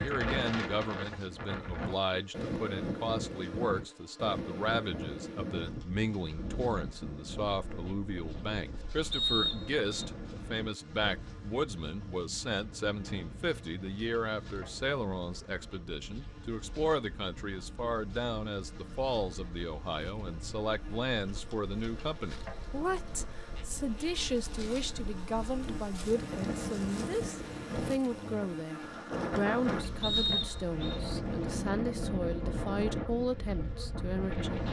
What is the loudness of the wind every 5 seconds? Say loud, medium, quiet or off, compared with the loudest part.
loud, medium, medium, quiet, quiet, loud, loud.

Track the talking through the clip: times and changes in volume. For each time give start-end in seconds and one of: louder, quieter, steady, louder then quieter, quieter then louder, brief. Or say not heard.
0.0-34.6 steady.